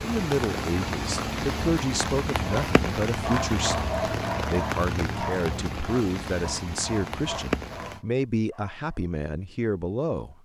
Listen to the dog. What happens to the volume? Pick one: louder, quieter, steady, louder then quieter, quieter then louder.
quieter.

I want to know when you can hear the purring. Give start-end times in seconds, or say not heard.
not heard.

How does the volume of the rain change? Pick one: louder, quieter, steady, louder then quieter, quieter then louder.
steady.